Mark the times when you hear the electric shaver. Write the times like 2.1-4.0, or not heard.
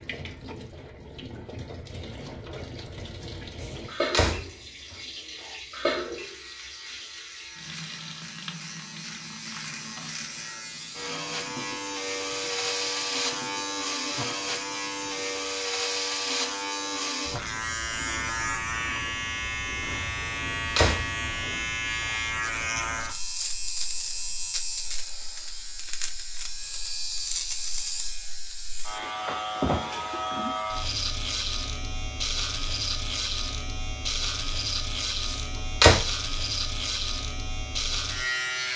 6.2-38.7.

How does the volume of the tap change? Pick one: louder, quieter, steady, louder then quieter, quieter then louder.
louder then quieter.